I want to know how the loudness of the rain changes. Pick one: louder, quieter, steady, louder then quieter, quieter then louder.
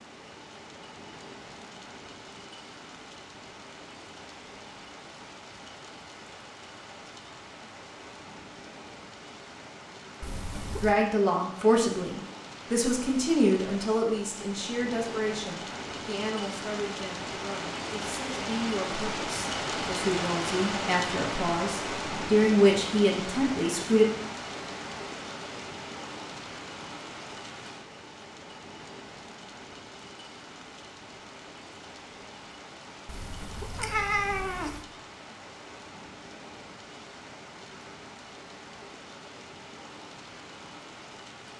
louder then quieter.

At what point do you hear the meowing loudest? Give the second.
34 s.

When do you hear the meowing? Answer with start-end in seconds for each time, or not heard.
10.2-10.9, 33.0-34.9.